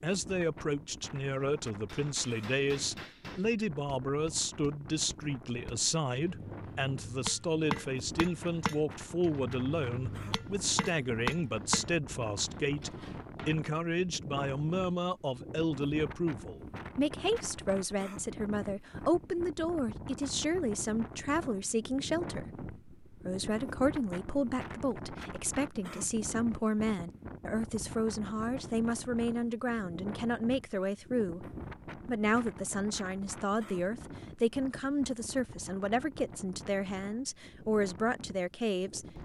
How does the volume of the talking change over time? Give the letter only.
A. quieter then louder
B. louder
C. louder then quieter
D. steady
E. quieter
D.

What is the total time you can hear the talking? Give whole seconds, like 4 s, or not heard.
39 s.